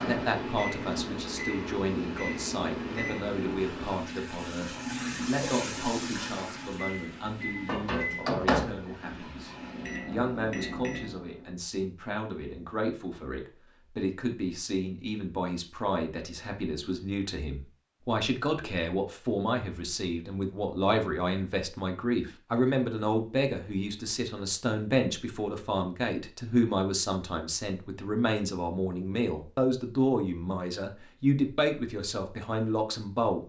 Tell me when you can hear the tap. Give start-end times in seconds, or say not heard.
0.0-10.1.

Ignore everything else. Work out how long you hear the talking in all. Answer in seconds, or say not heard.
33 s.